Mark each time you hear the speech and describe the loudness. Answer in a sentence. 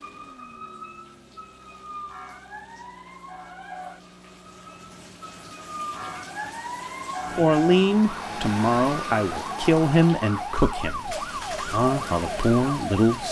You can hear the speech from 7.3 to 13.2 s, getting quieter then louder.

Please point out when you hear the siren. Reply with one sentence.
You can hear the siren from 0.0 to 13.2 s.